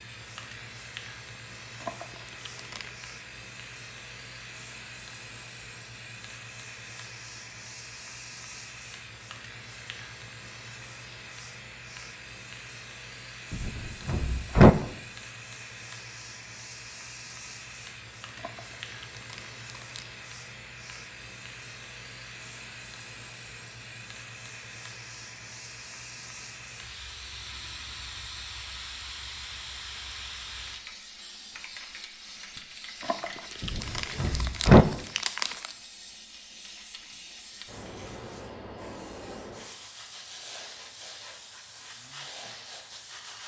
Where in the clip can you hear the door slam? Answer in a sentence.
You can hear the door slam from 13.5 to 14.7 s and from 33.6 to 34.9 s.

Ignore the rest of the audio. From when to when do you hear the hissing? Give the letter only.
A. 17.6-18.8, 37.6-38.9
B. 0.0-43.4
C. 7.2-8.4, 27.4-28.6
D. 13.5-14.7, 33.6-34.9
B.